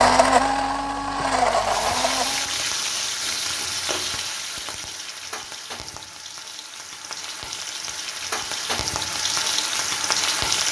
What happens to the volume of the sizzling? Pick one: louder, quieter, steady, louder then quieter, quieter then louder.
quieter then louder.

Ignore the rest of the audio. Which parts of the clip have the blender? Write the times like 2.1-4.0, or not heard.
0.0-2.5.